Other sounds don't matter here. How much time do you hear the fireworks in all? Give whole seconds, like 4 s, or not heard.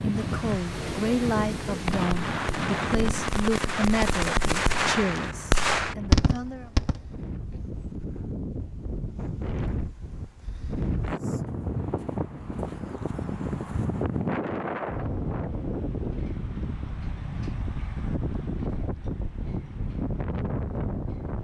7 s.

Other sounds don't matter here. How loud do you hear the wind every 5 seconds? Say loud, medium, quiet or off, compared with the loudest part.
loud, medium, loud, loud, loud.